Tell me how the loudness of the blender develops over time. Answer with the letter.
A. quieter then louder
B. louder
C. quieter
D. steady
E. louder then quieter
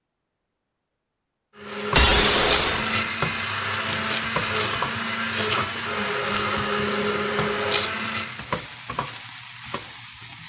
D.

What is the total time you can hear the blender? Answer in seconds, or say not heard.
7 s.